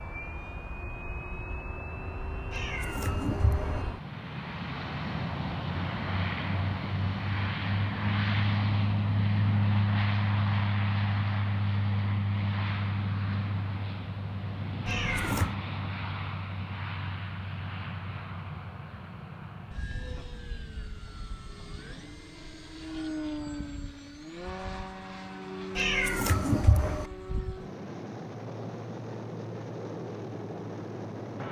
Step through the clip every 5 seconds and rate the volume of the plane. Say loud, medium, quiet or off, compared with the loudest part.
medium, loud, loud, medium, medium, medium, medium.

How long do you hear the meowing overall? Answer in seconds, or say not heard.
3 s.